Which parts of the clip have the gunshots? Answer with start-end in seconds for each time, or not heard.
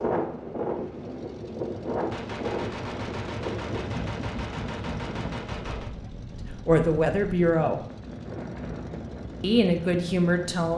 2.1-6.0.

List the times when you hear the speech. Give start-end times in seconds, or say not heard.
6.4-7.8, 9.4-10.7.